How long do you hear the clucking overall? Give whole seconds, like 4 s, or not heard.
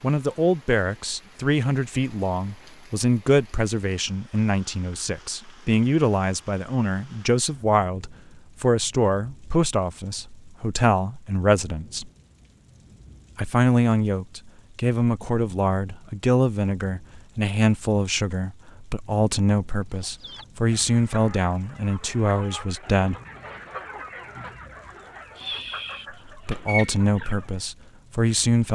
8 s.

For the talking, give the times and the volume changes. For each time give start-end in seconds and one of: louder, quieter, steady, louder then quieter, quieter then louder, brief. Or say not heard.
0.0-12.1 steady
13.3-23.2 steady
26.1-28.7 brief.